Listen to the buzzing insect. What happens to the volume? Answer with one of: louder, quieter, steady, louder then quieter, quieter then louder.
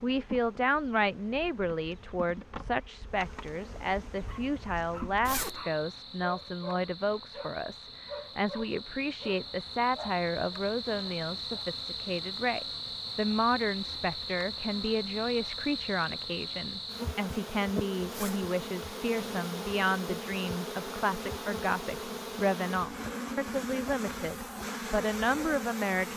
louder.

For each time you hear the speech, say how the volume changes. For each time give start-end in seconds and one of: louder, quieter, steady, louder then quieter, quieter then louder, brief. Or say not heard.
0.0-26.1 steady.